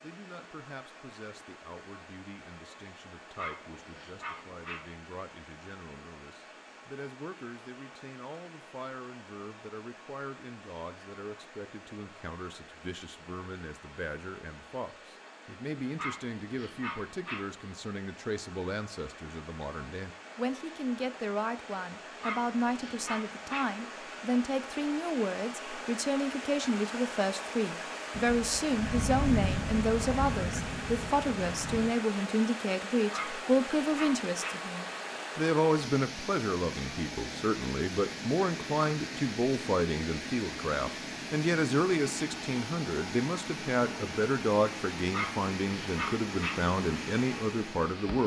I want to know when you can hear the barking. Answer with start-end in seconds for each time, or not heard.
3.4-4.8, 15.9-17.4, 22.2-23.6, 33.1-34.5, 45.1-46.5.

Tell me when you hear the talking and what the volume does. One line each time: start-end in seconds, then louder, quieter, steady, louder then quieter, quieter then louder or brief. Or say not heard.
0.0-48.2 louder.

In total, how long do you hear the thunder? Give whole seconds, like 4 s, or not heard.
4 s.